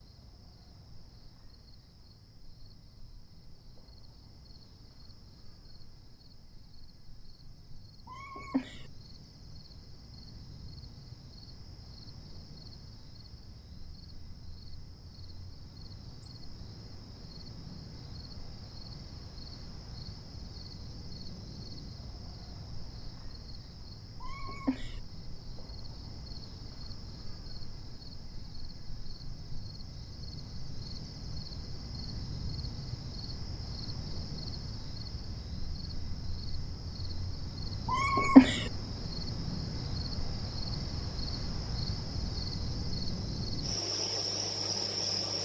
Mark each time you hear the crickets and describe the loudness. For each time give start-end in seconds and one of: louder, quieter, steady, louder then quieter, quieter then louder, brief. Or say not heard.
0.0-45.3 louder.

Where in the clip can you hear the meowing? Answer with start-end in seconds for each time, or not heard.
8.1-8.8, 24.2-25.0, 37.9-38.6.